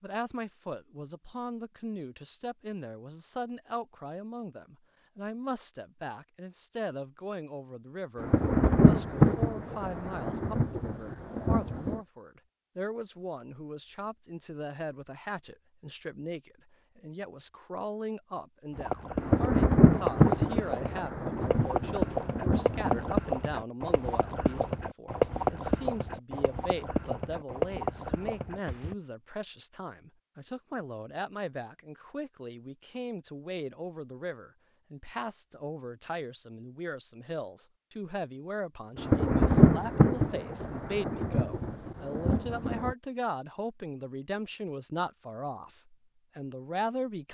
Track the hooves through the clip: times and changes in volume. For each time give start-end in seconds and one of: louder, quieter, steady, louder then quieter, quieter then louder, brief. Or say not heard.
18.7-28.9 steady.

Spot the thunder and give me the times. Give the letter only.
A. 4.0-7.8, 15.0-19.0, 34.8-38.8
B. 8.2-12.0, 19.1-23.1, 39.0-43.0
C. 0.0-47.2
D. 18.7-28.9
B.